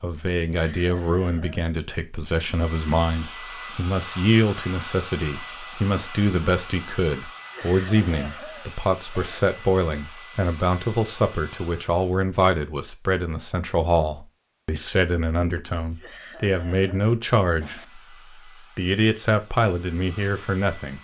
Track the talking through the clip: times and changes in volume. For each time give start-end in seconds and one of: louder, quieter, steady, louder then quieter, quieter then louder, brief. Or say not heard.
0.0-18.0 steady
18.8-20.9 brief.